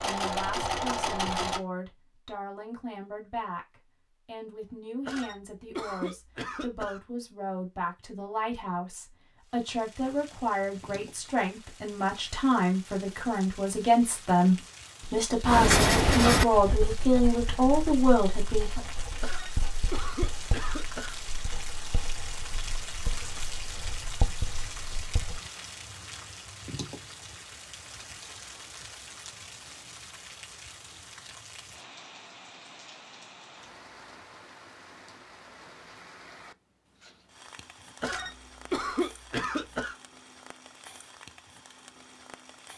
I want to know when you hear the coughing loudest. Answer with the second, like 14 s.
39 s.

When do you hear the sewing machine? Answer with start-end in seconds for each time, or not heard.
0.0-1.6.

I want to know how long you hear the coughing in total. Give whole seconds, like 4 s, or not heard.
6 s.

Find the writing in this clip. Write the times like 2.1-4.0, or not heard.
15.4-25.4.